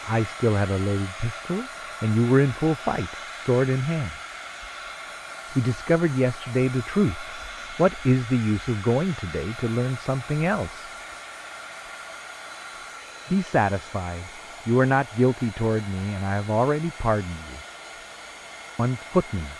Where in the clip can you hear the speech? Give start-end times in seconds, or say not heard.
0.1-4.2, 5.5-10.9, 13.3-17.6, 18.8-19.5.